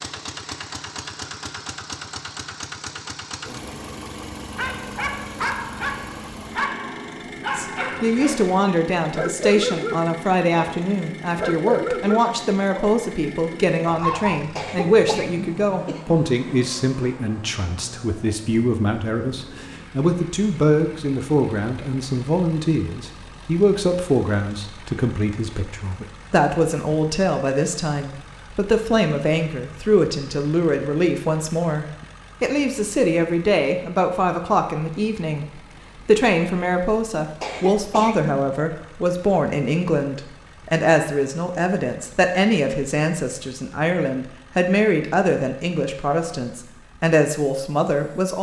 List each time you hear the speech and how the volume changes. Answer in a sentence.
The speech can be heard from 7.5 to 48.3 s, at a steady volume.